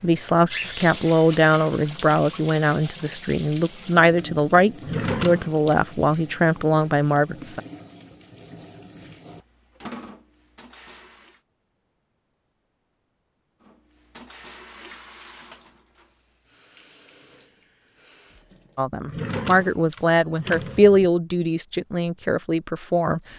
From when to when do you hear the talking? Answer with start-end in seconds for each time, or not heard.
0.0-7.6, 18.8-23.2.